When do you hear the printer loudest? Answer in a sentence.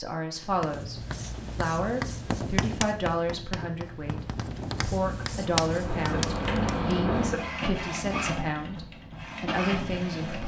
The loudest moment of the printer is at 7 seconds.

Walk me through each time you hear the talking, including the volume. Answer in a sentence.
You can hear the talking from 0.0 to 10.4 s, at a steady volume.